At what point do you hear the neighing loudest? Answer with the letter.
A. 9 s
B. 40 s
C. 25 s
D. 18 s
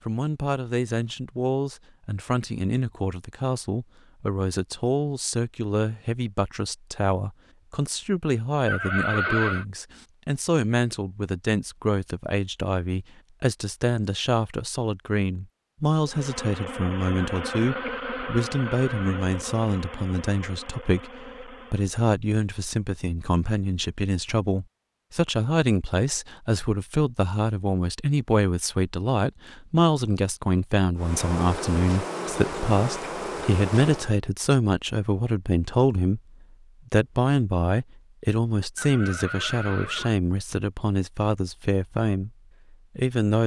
A.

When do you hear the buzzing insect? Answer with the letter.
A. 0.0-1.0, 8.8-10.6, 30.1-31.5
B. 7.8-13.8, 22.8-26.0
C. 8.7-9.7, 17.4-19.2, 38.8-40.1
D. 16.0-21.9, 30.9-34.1
D.